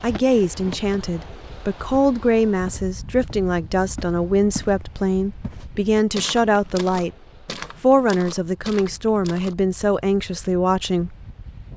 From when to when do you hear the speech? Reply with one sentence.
The speech can be heard from 0.0 to 7.2 s and from 7.8 to 11.2 s.